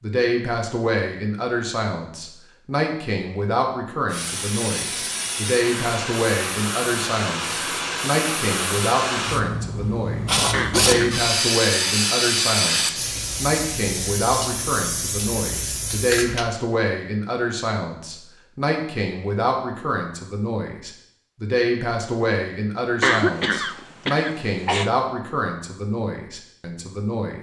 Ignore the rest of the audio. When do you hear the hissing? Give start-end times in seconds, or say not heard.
4.1-16.4.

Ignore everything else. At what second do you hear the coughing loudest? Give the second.
23 s.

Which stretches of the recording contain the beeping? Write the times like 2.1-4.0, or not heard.
not heard.